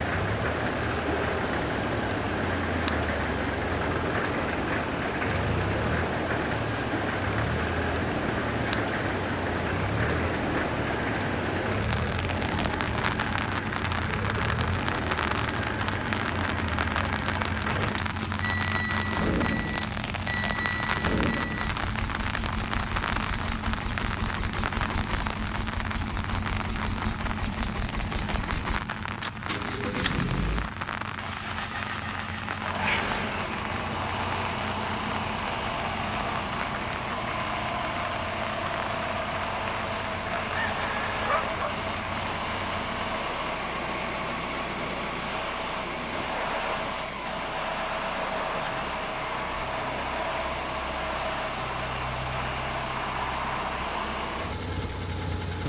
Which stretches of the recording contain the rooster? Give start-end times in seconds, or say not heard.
40.2-41.8.